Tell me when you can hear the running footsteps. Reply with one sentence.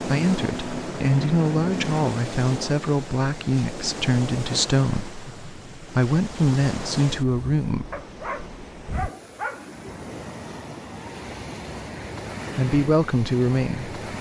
The running footsteps can't be heard in this clip.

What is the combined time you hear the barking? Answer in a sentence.
You can hear the barking for 2 seconds altogether.